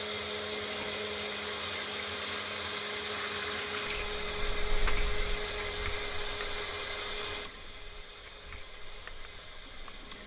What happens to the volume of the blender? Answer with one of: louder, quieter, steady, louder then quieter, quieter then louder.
quieter.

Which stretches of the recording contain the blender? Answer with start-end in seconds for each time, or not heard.
0.0-10.2.